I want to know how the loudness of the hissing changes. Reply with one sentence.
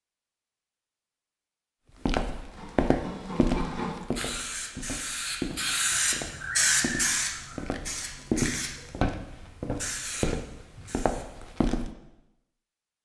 The loudness of the hissing goes up, then down.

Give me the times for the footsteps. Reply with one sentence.
You can hear the footsteps from 1.9 to 11.9 s.